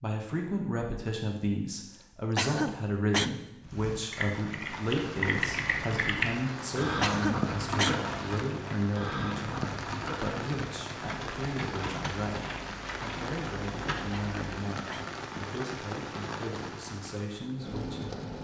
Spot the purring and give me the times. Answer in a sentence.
You can't hear the purring here.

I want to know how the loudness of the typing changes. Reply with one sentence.
The loudness of the typing goes down.